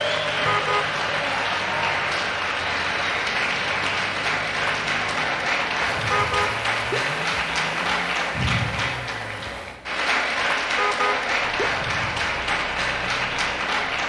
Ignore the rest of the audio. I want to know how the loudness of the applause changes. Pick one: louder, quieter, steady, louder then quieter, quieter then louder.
steady.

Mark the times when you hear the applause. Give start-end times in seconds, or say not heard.
0.0-14.0.